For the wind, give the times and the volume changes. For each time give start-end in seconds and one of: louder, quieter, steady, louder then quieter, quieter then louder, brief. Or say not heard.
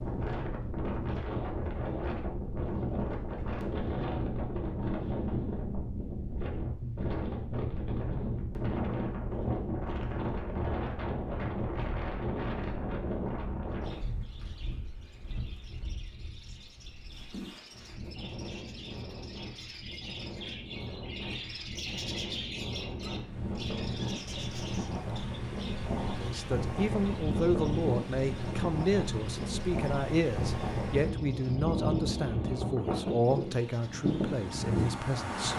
0.0-35.5 quieter then louder.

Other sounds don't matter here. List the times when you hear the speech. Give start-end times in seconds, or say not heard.
26.2-35.5.